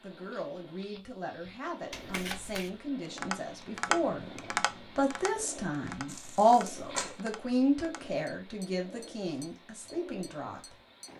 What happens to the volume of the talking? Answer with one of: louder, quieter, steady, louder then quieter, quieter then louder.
louder then quieter.